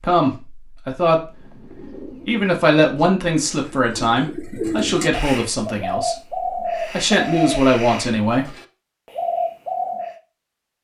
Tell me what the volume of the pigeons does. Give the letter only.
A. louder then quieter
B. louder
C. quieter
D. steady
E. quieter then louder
B.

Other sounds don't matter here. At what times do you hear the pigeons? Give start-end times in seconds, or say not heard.
1.2-10.2.